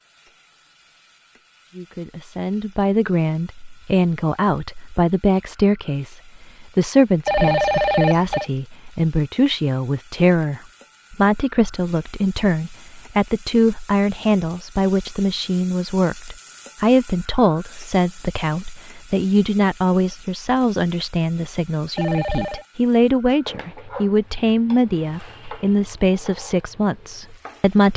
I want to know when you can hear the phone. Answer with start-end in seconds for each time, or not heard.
7.2-8.4, 21.9-22.6.